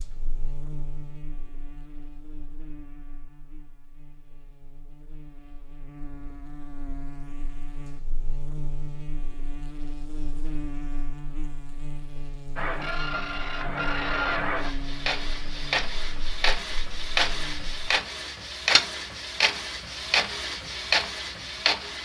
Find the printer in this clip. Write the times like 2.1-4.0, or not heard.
12.6-21.9.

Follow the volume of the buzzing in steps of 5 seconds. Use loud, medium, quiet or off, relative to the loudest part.
medium, loud, loud, medium, off.